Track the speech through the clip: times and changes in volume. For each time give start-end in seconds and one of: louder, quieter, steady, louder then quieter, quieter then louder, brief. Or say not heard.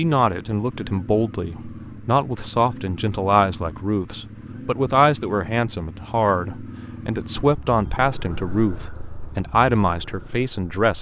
0.0-10.9 steady.